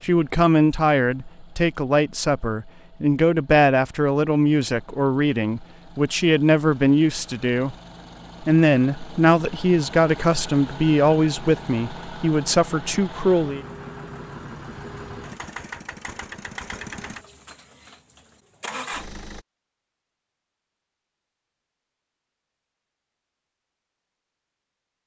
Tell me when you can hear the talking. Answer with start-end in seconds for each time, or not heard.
0.0-7.8, 8.4-13.6.